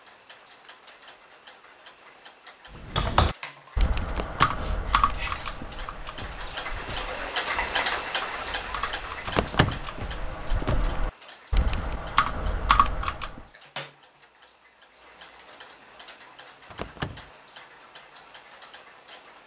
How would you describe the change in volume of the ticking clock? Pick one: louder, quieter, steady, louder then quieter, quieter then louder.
louder then quieter.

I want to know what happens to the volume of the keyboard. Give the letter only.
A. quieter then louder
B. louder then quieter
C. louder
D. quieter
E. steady
A.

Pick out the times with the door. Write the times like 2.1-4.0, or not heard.
4.0-4.7, 9.2-9.8, 16.7-17.3.